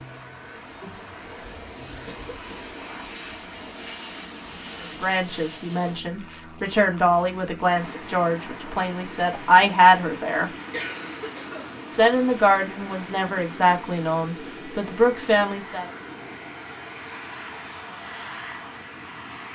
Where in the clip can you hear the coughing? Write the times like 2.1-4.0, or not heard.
2.0-2.8, 10.7-12.4.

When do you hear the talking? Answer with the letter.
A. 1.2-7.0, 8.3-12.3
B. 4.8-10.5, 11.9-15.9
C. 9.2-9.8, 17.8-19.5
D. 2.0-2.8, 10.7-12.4
B.